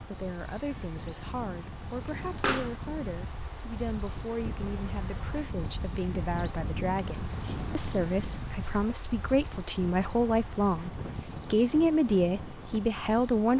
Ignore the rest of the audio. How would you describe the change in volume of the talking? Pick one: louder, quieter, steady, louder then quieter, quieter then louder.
louder.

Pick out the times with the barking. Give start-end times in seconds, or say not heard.
not heard.